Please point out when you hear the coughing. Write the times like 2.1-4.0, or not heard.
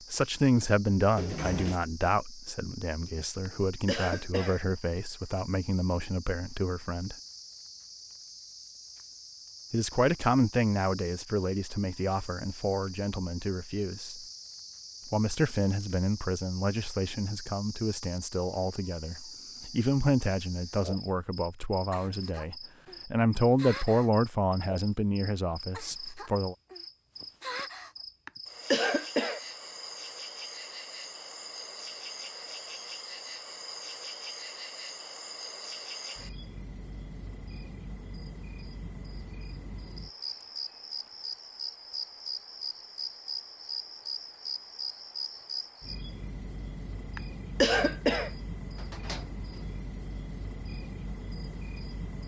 3.5-4.6, 28.2-29.4, 47.1-48.3.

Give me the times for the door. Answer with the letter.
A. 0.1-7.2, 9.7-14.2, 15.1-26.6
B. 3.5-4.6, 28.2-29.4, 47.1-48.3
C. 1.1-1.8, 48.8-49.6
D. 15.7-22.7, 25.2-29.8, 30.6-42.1
C.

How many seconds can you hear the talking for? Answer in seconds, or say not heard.
23 s.